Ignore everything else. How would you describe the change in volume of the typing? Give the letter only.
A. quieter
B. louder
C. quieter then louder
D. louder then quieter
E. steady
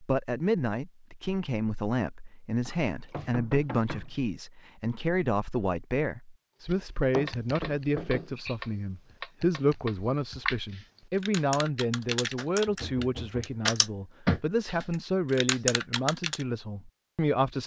B.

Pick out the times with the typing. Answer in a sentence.
The typing can be heard from 6.7 to 16.4 s.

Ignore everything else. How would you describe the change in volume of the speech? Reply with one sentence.
The volume of the speech stays about the same.